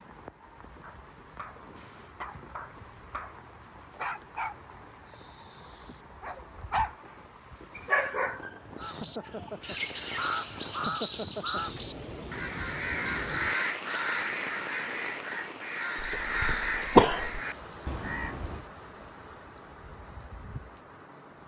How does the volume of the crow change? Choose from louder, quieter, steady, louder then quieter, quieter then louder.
steady.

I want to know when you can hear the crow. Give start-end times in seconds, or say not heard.
8.8-18.6.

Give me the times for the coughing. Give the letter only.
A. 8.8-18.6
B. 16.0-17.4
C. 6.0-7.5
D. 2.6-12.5
B.